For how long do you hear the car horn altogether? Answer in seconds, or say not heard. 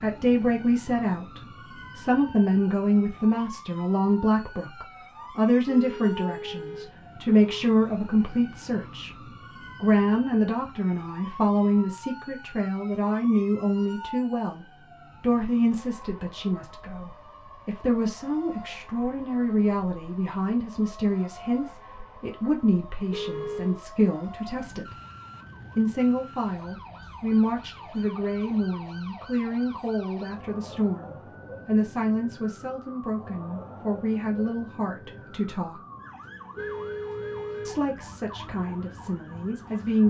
4 s.